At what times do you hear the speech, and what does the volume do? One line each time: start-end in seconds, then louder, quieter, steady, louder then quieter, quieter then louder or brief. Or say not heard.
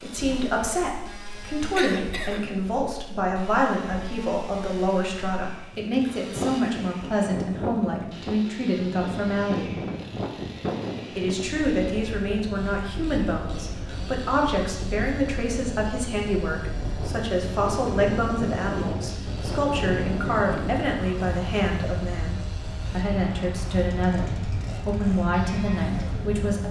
0.0-9.8 steady
11.1-26.6 steady.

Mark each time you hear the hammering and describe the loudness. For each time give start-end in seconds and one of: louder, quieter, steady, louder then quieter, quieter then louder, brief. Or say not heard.
not heard.